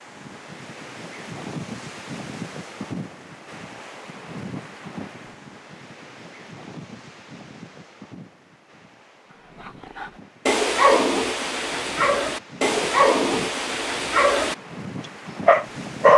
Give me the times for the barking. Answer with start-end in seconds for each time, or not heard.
9.7-14.6, 15.4-16.1.